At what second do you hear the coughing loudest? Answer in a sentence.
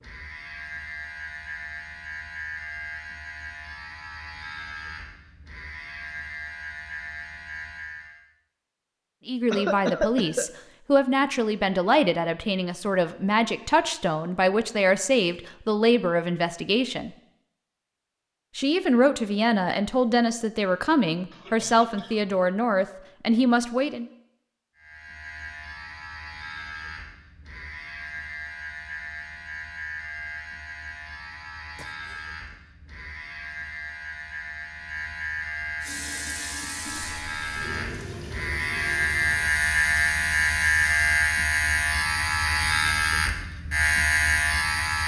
The volume of the coughing peaks at 10 seconds.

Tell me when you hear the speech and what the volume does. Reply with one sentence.
You can hear the speech from 9.2 to 17.1 s, at a steady volume; and from 18.6 to 24.1 s, at a steady volume.